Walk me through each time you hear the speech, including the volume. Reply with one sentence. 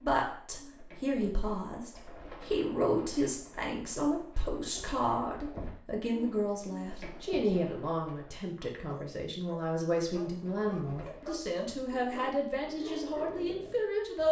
You can hear the speech from 0.0 to 14.2 s, at a steady volume.